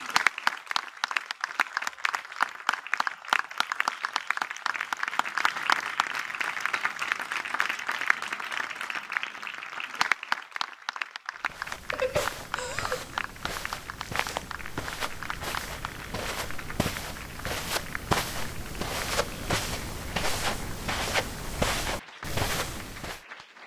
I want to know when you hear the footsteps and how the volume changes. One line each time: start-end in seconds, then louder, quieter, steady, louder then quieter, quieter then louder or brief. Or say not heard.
11.4-23.2 louder.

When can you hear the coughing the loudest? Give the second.
12 s.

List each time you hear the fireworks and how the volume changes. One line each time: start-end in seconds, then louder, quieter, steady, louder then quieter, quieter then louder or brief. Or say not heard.
not heard.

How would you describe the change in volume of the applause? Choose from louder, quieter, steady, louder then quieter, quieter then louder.
quieter.